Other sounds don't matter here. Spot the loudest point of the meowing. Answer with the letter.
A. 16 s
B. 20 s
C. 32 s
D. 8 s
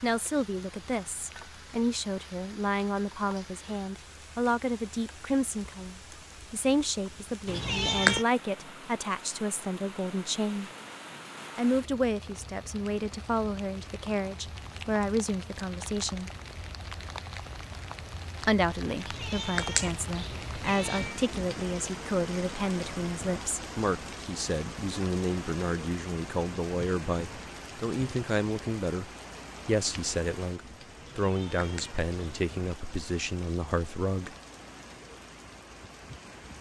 D.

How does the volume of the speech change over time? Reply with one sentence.
The loudness of the speech stays about the same.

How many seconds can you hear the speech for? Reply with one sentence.
You can hear the speech for 31 seconds altogether.